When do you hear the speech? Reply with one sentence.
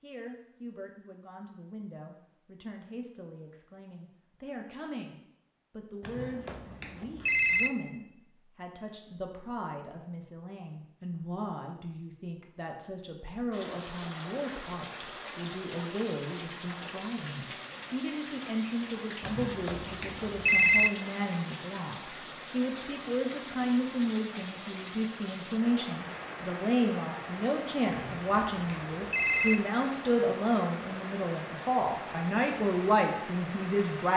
The speech can be heard from 0.0 to 34.1 s.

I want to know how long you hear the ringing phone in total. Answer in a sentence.
The ringing phone can be heard for 5 seconds in total.